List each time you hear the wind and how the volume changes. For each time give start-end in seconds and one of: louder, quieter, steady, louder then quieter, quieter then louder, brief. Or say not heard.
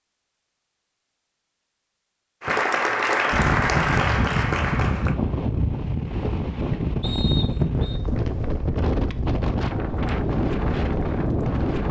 3.3-11.8 steady.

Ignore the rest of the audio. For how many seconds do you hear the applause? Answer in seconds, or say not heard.
3 s.